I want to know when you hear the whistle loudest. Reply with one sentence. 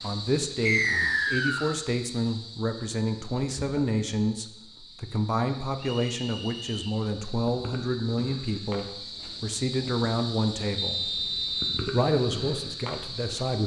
The volume of the whistle peaks at 1 second.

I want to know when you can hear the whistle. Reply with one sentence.
You can hear the whistle from 0.7 to 1.8 s, from 5.8 to 7.0 s and from 10.8 to 11.8 s.